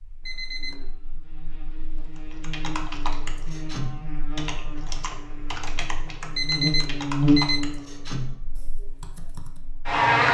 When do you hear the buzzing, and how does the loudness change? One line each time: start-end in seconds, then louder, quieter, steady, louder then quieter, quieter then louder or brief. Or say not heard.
0.0-10.2 louder then quieter.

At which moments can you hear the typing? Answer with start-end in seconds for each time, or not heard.
2.1-9.6.